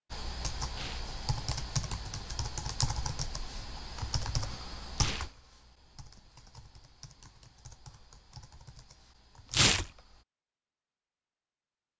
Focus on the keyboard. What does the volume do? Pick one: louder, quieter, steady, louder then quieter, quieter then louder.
quieter.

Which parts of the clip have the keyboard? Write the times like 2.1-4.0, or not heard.
0.1-10.2.